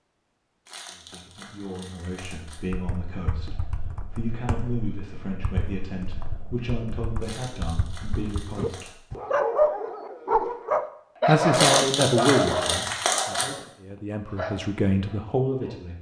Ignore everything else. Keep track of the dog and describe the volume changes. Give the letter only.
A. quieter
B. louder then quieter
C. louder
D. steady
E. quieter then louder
A.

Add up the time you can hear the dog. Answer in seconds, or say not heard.
7 s.